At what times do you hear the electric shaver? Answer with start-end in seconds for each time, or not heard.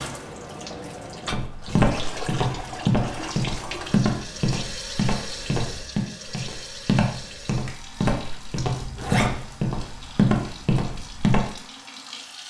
not heard.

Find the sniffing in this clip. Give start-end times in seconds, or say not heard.
not heard.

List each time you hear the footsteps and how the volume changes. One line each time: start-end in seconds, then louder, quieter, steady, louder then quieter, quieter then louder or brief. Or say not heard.
1.3-11.5 steady.